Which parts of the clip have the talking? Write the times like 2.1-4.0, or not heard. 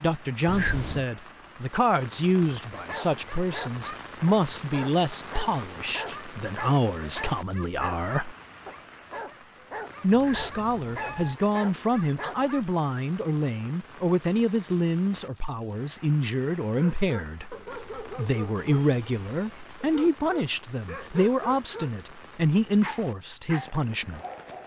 0.0-8.3, 10.0-24.2.